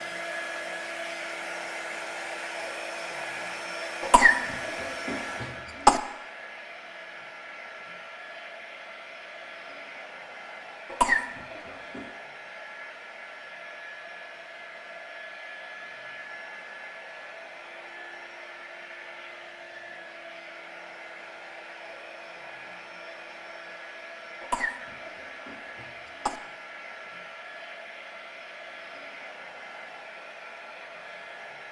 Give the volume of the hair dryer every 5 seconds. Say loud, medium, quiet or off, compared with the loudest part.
loud, medium, medium, medium, medium, medium, medium.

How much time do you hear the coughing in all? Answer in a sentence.
The coughing can be heard for 5 seconds in total.